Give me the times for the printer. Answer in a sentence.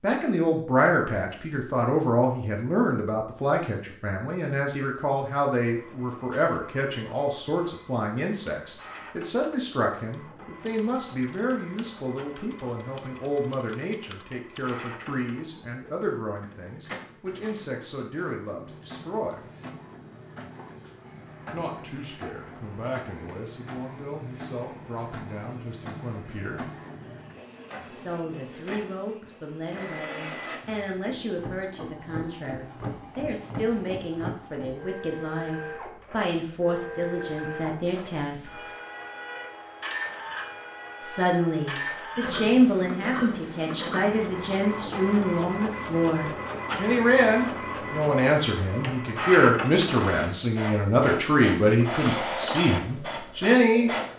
You can hear the printer from 5.6 to 54.1 s.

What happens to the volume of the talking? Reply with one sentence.
The loudness of the talking goes down, then up.